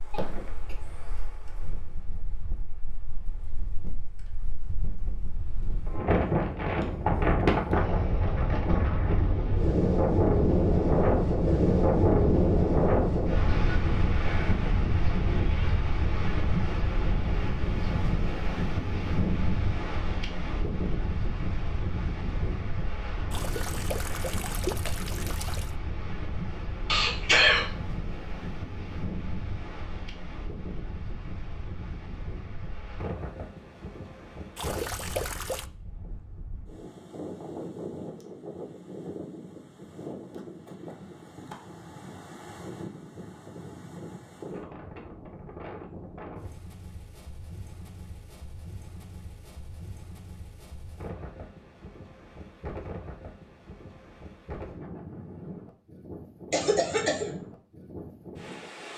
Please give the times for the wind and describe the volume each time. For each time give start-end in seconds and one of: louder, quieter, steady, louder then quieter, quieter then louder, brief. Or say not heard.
0.0-58.9 quieter.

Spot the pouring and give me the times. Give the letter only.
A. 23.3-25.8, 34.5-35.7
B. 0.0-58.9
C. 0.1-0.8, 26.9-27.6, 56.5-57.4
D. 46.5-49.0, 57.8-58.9
A.